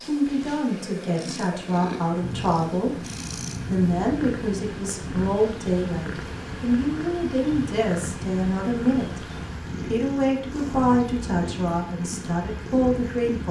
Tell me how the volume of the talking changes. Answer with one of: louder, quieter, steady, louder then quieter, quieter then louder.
steady.